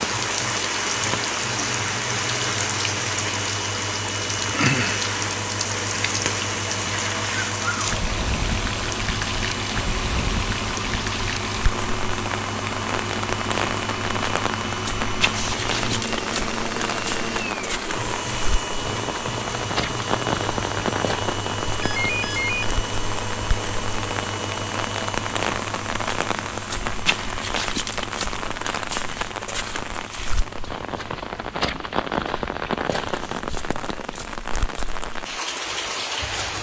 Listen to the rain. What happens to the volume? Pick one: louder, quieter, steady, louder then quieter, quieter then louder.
steady.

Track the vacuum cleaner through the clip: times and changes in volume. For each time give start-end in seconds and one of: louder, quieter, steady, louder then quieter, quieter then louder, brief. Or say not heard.
0.0-36.2 quieter.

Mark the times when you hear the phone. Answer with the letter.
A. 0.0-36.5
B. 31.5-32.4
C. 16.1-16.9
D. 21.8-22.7
D.